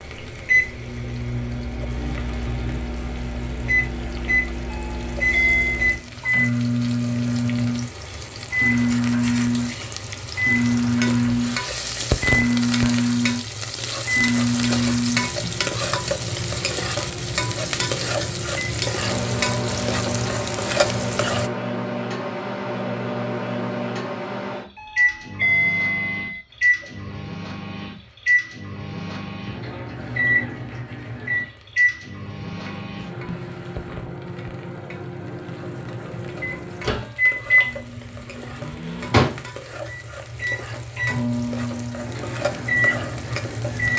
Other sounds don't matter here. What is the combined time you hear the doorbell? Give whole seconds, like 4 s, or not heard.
3 s.